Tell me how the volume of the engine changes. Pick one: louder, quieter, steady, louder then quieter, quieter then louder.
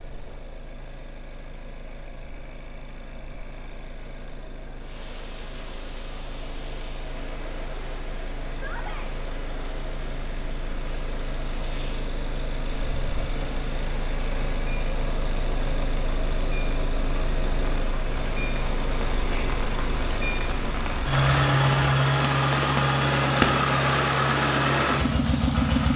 louder.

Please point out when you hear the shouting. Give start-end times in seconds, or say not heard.
8.5-9.1.